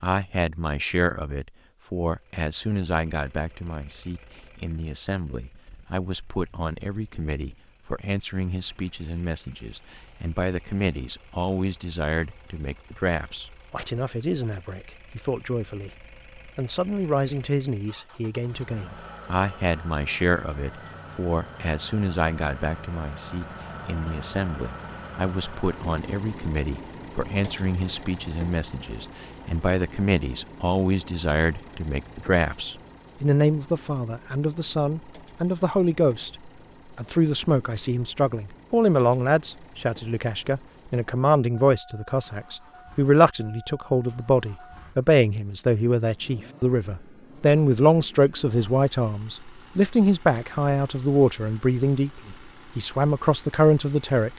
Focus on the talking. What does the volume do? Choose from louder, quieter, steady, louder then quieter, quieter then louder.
louder.